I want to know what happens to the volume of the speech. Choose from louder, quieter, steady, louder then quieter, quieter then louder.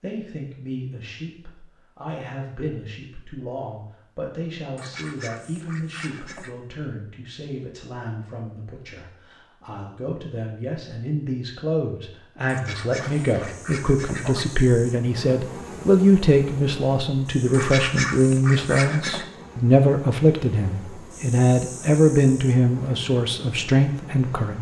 louder.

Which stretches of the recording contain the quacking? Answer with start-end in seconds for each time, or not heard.
4.8-6.5, 12.4-14.4, 17.5-19.2.